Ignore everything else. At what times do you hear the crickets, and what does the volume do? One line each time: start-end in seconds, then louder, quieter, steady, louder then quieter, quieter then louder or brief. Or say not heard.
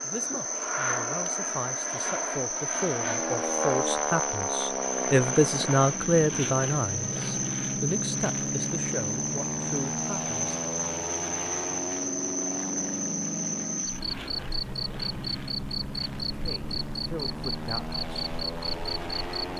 0.0-19.5 steady.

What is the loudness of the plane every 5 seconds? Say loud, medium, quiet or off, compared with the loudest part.
loud, loud, loud, medium.